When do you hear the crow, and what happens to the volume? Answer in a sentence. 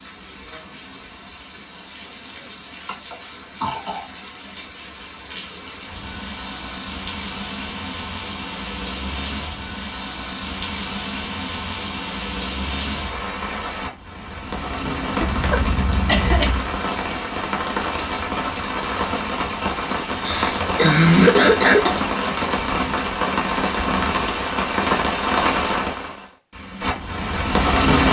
You can't hear the crow here.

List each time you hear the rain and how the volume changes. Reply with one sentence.
You can hear the rain from 0.0 to 28.0 s, getting louder.